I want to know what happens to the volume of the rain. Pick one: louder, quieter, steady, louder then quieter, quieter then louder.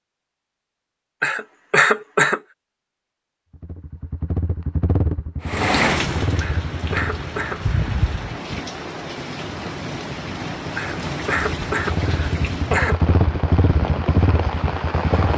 steady.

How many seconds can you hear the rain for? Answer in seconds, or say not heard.
10 s.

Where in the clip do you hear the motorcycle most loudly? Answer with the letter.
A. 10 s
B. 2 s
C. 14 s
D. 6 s
C.